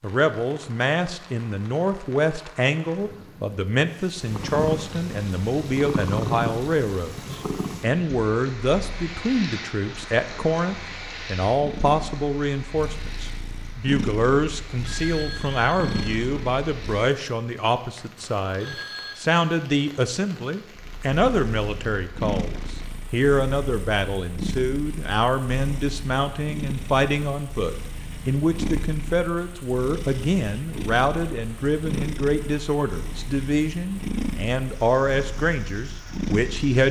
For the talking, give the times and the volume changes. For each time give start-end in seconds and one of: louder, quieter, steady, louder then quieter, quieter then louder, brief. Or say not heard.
0.0-36.8 steady.